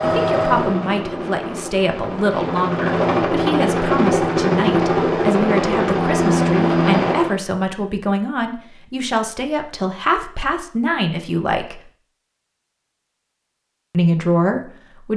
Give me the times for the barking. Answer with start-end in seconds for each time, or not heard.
not heard.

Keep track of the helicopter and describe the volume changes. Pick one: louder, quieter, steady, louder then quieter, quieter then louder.
louder.